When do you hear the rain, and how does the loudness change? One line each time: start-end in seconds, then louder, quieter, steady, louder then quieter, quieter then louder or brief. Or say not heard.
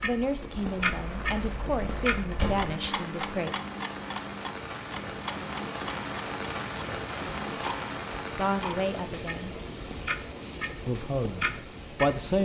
0.0-12.3 louder then quieter.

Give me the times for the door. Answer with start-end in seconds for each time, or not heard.
0.8-2.8.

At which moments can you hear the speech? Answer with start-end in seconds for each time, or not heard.
0.0-3.5, 8.3-9.6, 10.8-12.3.